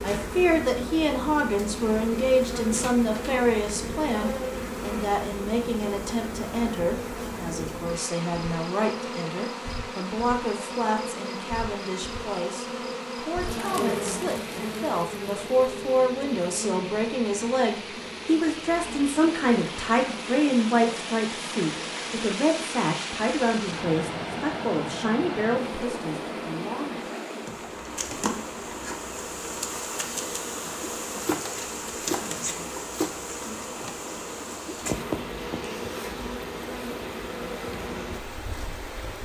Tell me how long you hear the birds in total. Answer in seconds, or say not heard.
not heard.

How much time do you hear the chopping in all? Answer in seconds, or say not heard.
2 s.